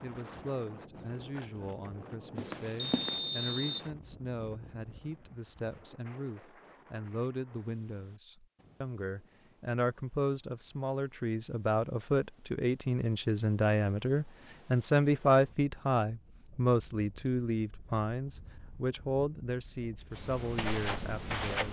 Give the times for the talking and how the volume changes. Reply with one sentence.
You can hear the talking from 0.0 to 21.6 s, getting louder then quieter.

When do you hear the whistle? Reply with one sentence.
You can hear the whistle from 2.8 to 3.9 s.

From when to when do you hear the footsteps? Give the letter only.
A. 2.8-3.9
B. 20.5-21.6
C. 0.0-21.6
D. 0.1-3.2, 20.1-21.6
D.